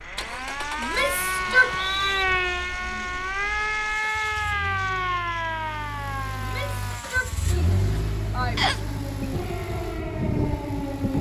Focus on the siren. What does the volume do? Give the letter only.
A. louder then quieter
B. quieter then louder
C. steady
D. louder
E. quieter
B.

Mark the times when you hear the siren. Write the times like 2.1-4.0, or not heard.
0.0-11.1.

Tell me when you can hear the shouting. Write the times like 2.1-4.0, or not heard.
0.8-1.8, 6.3-8.6.